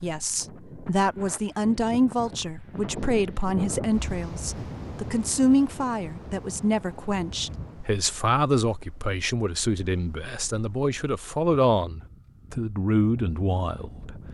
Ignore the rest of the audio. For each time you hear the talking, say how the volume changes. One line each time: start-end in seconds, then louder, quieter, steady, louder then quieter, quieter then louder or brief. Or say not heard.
0.0-14.2 steady.